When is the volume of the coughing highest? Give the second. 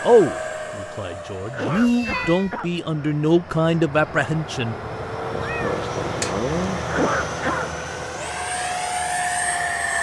7 s.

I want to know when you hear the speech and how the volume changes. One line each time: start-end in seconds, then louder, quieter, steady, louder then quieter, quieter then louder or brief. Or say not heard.
0.0-4.8 louder.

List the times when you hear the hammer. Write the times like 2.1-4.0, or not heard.
not heard.